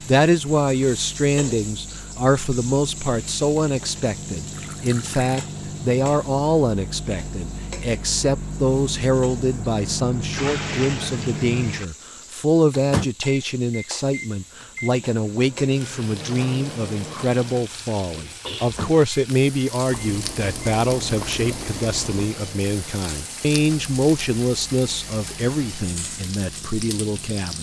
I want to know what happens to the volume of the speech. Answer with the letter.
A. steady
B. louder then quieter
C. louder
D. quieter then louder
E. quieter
A.